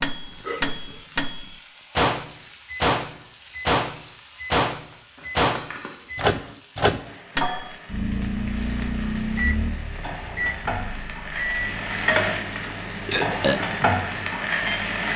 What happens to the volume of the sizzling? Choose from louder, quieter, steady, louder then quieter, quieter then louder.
louder.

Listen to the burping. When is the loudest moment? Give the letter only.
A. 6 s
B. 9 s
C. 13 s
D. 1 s
C.